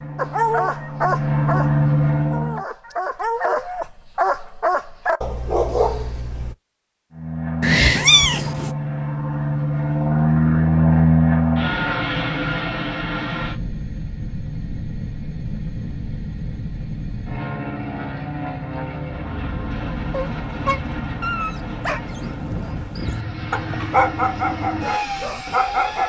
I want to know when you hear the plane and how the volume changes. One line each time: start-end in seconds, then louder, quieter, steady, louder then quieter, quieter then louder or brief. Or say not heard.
0.0-2.6 brief
7.1-26.0 quieter.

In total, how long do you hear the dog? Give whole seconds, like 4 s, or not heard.
12 s.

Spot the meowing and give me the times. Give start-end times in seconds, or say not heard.
7.6-8.7.